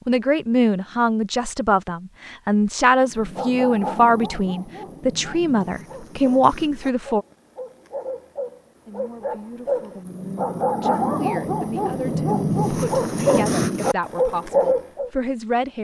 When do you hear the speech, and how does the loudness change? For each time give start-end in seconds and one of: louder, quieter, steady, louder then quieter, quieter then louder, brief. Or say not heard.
0.1-7.2 steady
8.8-15.7 louder.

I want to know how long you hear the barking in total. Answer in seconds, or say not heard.
12 s.